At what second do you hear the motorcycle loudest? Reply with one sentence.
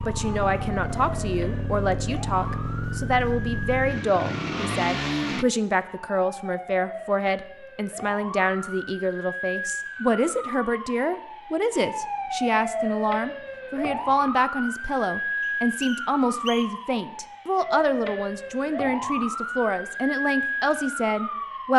The volume of the motorcycle peaks at 5 seconds.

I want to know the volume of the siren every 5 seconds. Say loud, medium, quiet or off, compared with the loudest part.
medium, medium, loud, loud, loud.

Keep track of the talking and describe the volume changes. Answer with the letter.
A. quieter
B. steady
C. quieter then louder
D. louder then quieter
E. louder
B.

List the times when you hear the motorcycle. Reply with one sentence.
You can hear the motorcycle from 0.0 to 5.5 s.